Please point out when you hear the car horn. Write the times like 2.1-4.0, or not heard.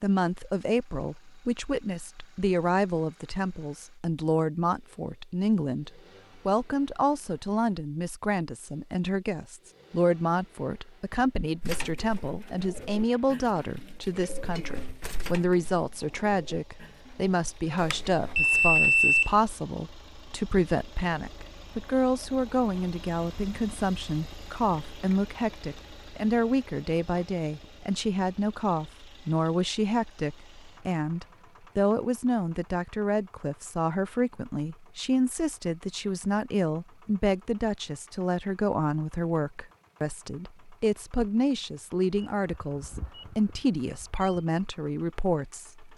not heard.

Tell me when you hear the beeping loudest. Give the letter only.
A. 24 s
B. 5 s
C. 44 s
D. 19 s
D.